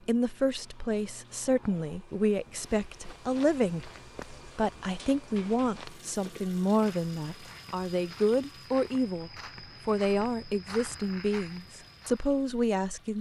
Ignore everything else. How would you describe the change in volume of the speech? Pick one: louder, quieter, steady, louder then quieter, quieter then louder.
steady.